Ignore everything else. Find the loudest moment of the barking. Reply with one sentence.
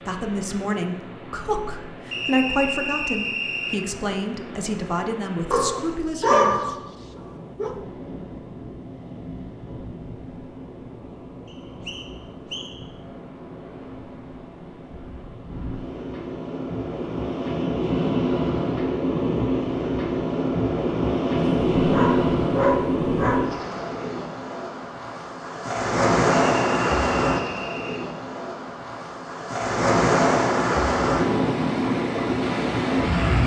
The loudest moment of the barking is at 6 seconds.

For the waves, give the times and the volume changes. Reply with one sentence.
You can hear the waves from 0.0 to 33.4 s, getting louder.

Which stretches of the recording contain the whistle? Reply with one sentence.
You can hear the whistle from 2.1 to 3.8 s, from 11.4 to 12.8 s and from 26.4 to 28.0 s.